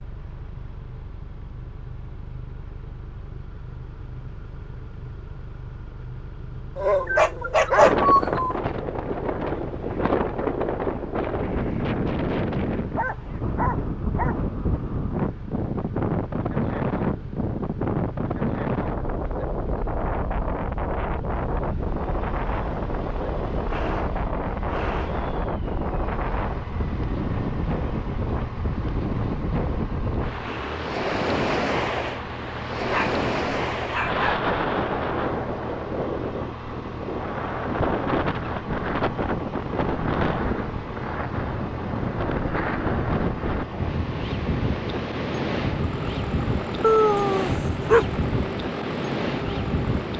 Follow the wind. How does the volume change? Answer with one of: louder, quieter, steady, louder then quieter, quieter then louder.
steady.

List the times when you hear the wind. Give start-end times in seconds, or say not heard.
7.8-50.1.